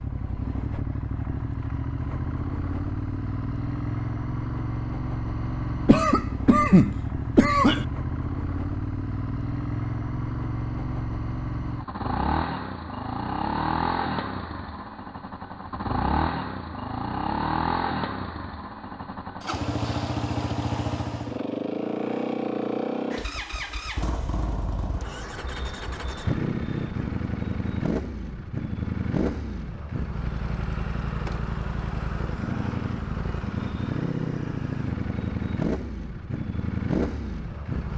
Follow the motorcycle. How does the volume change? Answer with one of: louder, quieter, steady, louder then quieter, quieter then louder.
steady.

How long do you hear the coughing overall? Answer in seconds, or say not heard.
2 s.